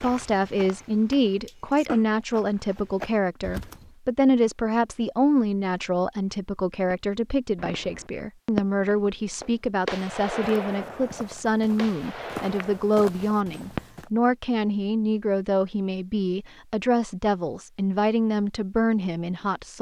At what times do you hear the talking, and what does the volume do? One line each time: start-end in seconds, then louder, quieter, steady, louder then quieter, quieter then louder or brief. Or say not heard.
0.0-19.7 steady.